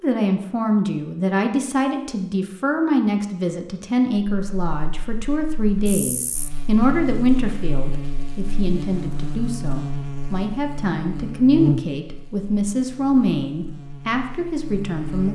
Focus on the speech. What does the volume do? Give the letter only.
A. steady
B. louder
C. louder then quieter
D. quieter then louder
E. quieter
A.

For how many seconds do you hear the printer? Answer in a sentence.
The printer can't be heard in this clip.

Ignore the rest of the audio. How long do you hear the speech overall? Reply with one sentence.
You can hear the speech for 15 seconds altogether.